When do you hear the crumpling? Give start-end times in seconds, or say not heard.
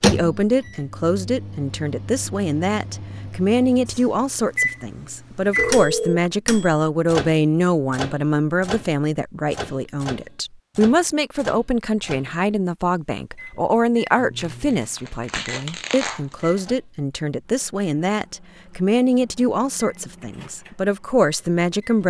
14.4-16.6.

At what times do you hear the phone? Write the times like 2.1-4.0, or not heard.
5.5-6.3.